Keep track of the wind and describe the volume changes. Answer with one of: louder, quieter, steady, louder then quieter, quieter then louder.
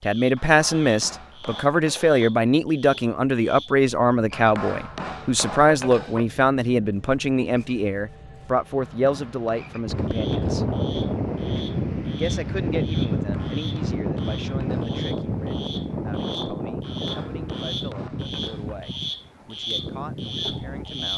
quieter.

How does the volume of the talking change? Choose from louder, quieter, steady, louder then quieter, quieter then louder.
quieter.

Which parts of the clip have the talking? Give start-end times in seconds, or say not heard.
0.0-10.7, 12.1-21.1.